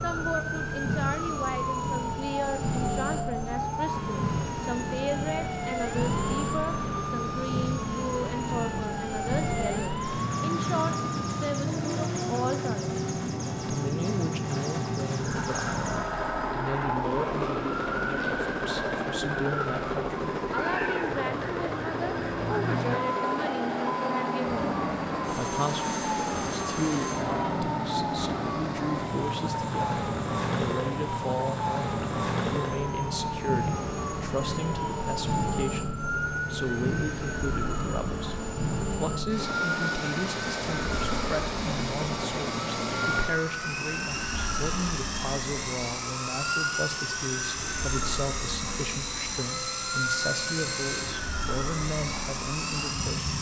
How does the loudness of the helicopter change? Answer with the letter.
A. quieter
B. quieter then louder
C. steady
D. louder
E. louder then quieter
C.